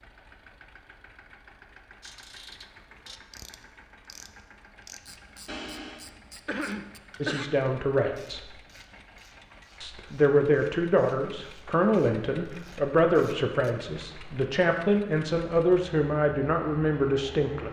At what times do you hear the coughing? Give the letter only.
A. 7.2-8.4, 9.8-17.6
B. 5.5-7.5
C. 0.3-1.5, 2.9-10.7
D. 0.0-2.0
B.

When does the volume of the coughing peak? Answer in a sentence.
The volume of the coughing peaks at 7 seconds.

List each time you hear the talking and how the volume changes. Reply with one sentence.
The talking can be heard briefly from 7.2 to 8.4 s; and from 9.8 to 17.6 s, at a steady volume.